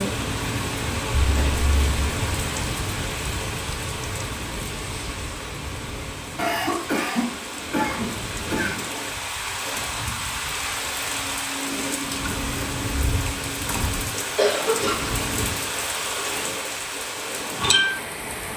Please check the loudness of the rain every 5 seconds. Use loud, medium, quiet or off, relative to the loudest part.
loud, medium, loud, loud.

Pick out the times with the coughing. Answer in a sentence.
The coughing can be heard from 1.1 to 2.0 s, from 6.3 to 8.8 s and from 14.2 to 14.9 s.